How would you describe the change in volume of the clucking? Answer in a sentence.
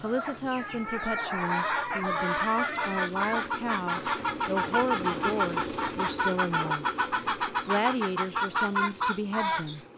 The loudness of the clucking stays about the same.